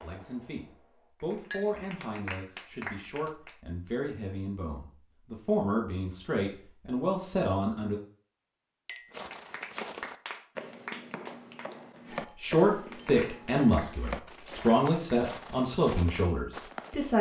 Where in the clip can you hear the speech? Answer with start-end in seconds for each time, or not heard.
0.0-8.0, 12.4-17.1.